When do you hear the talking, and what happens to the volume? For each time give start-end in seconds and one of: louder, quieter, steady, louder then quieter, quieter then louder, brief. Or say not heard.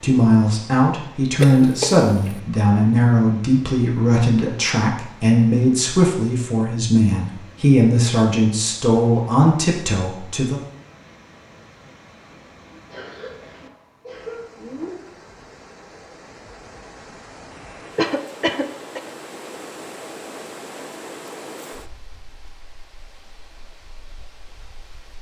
0.0-10.6 steady.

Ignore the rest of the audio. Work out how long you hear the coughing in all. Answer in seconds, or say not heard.
4 s.